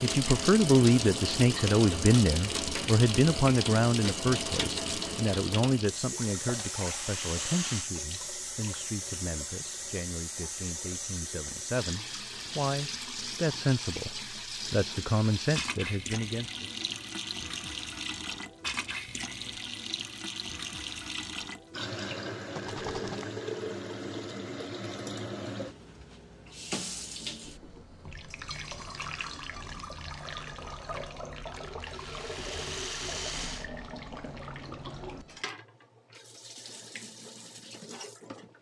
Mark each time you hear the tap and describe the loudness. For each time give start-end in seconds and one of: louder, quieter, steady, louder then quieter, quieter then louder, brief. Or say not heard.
0.0-38.5 quieter.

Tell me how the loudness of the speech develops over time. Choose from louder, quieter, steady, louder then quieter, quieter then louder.
quieter then louder.